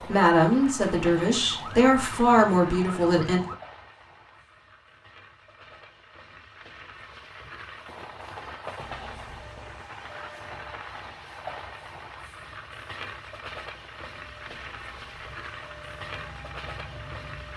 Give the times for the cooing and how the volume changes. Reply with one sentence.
The cooing can't be heard in this clip.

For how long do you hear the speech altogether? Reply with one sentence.
You can hear the speech for 3 seconds altogether.